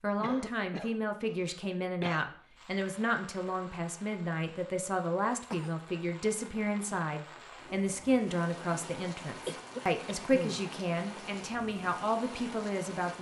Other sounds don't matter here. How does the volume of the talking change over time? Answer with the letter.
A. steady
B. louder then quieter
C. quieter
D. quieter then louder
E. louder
A.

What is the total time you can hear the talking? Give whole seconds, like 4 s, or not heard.
13 s.